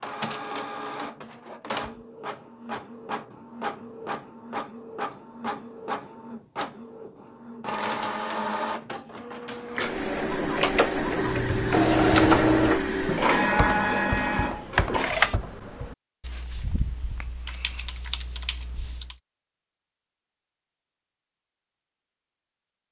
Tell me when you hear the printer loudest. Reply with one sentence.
The loudest moment of the printer is at 12 seconds.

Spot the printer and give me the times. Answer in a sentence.
The printer can be heard from 0.0 to 15.3 s.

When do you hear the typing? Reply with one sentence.
The typing can be heard from 11.2 to 19.1 s.